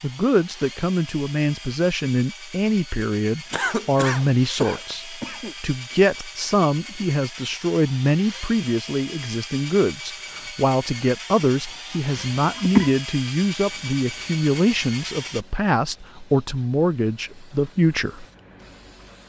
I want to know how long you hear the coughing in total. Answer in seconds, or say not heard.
3 s.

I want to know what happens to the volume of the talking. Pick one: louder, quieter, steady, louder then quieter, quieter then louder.
steady.